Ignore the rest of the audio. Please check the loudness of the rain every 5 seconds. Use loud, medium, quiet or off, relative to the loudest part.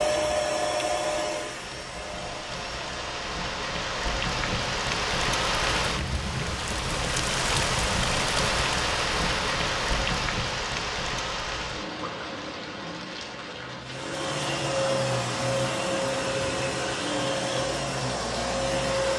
medium, loud, medium, medium.